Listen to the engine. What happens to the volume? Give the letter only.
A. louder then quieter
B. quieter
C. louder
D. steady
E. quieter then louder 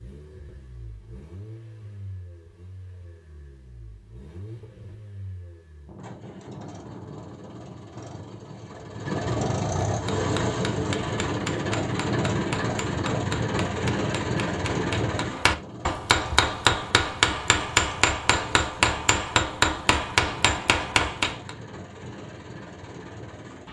A.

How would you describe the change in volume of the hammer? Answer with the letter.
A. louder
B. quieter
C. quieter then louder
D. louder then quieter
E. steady
A.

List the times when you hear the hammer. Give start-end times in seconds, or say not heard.
9.9-21.5.